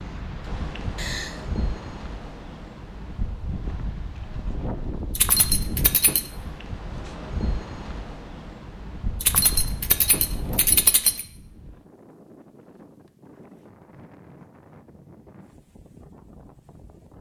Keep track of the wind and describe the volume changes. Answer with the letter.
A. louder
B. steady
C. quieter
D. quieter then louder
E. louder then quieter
C.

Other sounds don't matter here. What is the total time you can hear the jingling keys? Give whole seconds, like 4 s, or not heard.
3 s.